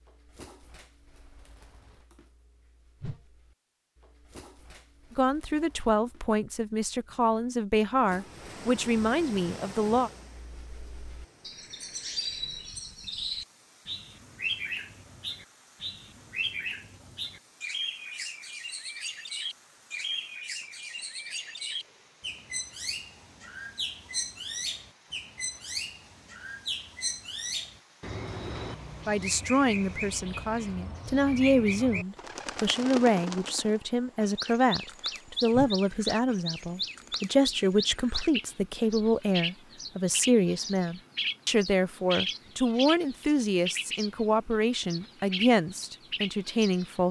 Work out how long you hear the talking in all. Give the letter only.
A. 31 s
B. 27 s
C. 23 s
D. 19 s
C.